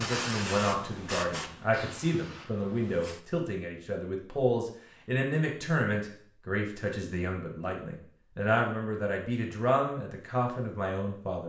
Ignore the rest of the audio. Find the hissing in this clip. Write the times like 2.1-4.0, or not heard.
0.0-3.2.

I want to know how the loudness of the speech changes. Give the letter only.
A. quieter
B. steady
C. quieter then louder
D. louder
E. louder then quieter
B.